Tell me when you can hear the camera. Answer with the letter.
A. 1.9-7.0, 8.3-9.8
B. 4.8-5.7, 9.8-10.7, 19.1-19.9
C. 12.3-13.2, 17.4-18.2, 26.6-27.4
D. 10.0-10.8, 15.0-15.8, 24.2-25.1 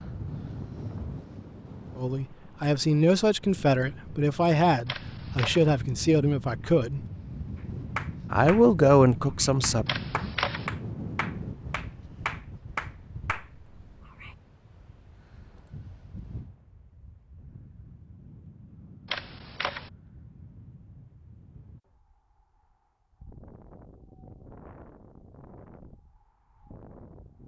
B.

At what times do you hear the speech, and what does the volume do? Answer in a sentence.
The speech can be heard from 1.9 to 7.0 s, at a steady volume; and briefly from 8.3 to 9.8 s.